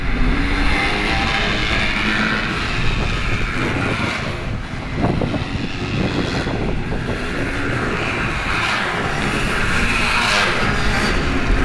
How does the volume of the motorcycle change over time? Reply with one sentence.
The loudness of the motorcycle goes down, then up.